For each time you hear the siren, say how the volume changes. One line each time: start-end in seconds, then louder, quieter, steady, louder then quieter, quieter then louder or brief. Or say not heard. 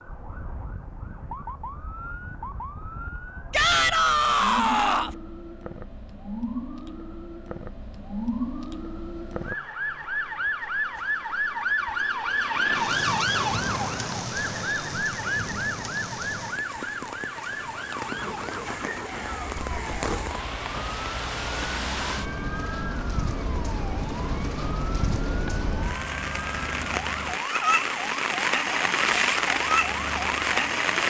0.0-30.9 louder then quieter.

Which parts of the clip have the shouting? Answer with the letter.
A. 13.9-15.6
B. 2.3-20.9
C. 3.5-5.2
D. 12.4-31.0
C.